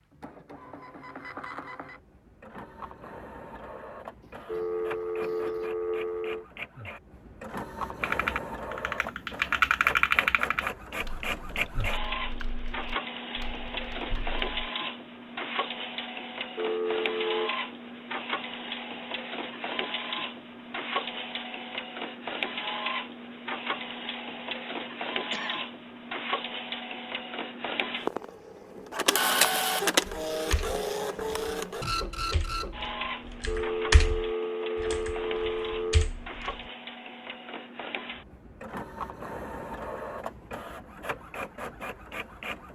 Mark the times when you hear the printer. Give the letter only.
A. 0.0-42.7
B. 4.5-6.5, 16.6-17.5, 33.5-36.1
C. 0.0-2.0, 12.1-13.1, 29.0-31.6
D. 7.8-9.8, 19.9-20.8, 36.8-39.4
A.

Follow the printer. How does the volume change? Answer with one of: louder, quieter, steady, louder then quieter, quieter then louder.
louder then quieter.